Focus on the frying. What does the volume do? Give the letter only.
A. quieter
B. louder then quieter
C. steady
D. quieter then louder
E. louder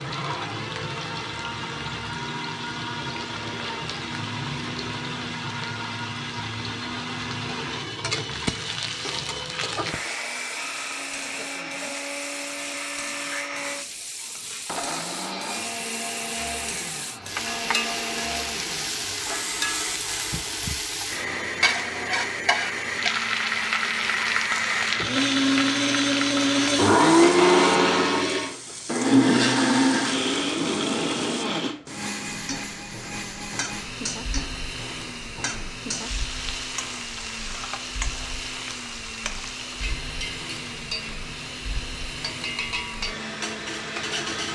B.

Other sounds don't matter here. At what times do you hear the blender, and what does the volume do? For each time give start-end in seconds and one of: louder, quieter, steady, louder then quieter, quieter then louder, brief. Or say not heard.
0.0-44.5 louder then quieter.